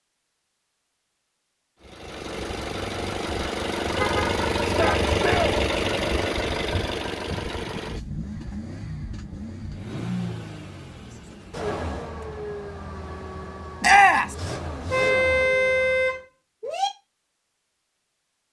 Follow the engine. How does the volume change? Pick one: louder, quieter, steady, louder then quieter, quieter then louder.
quieter.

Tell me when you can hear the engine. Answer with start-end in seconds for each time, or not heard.
1.8-16.2.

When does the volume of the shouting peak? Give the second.
14 s.